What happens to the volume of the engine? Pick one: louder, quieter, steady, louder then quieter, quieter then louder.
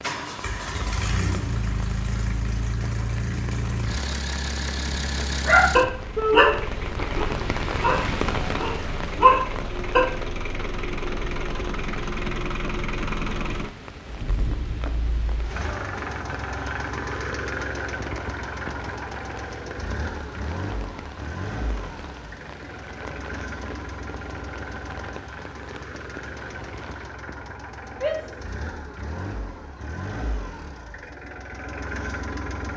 quieter.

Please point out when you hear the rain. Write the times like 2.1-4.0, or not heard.
0.0-27.1.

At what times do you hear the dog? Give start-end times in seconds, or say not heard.
5.5-10.1.